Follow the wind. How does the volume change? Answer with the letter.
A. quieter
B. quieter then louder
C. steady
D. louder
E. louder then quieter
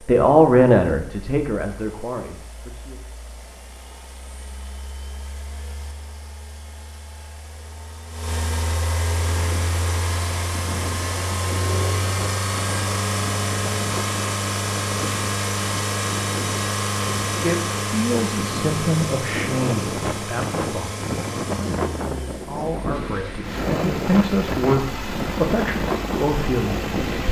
D.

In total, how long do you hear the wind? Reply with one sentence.
The wind can be heard for 18 seconds in total.